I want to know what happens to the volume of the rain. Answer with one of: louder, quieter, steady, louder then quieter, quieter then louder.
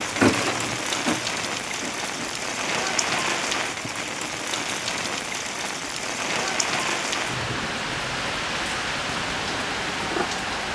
steady.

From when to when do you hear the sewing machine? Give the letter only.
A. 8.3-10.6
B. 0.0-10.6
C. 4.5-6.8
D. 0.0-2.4
D.